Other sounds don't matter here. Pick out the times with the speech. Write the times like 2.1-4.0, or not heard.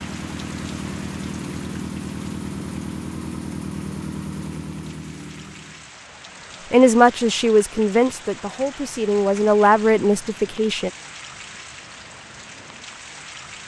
6.7-10.9.